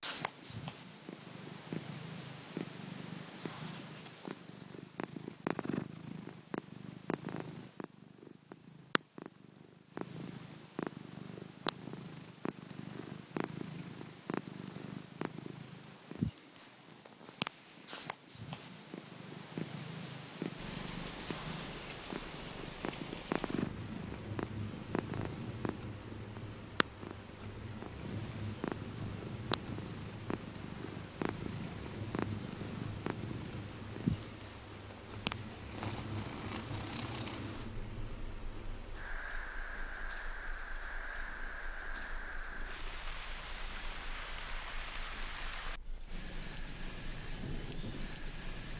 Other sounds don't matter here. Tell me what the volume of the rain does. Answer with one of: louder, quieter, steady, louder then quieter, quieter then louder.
steady.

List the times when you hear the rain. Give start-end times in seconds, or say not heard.
20.6-48.7.